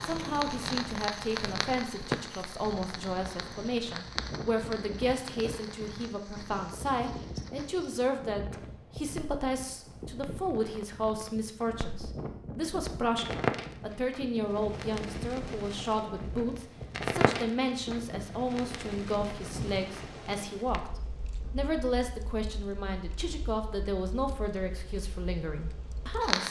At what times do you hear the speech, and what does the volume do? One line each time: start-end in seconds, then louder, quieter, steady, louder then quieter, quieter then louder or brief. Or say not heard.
0.0-26.4 steady.